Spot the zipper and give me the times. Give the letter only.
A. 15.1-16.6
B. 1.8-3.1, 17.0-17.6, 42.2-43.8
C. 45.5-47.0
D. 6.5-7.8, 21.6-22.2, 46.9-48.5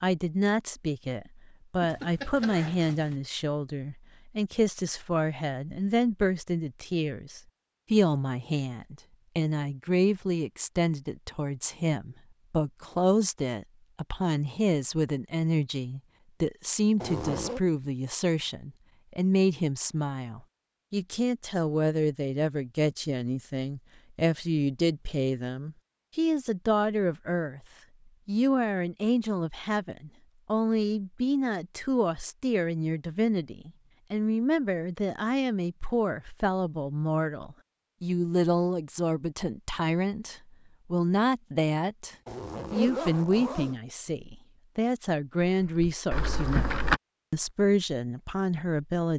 B.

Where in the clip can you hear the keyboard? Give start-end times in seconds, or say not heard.
45.5-47.0.